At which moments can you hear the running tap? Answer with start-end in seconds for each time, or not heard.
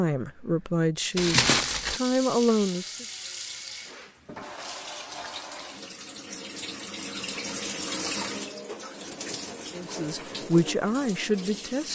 0.1-11.8.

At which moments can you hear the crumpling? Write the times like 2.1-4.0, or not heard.
1.1-2.0.